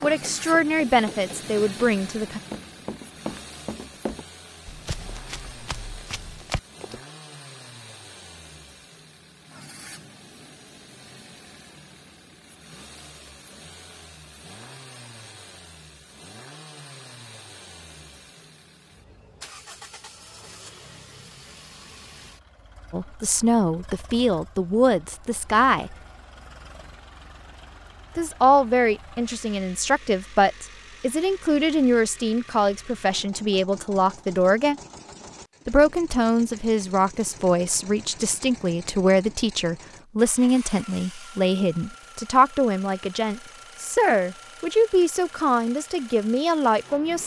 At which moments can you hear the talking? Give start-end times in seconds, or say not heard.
0.0-2.4, 22.9-25.9, 28.1-34.8, 35.6-47.2.